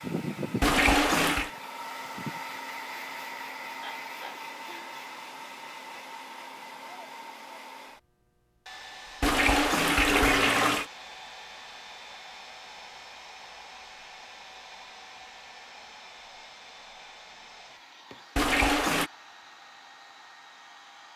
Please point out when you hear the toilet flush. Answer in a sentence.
You can hear the toilet flush from 0.6 to 1.5 s, from 9.2 to 10.8 s and from 18.4 to 19.1 s.